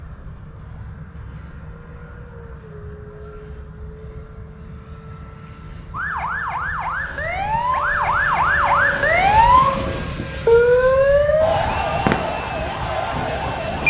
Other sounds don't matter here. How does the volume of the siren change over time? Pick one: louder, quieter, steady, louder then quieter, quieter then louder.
louder then quieter.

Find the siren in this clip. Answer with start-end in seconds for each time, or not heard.
5.9-13.8.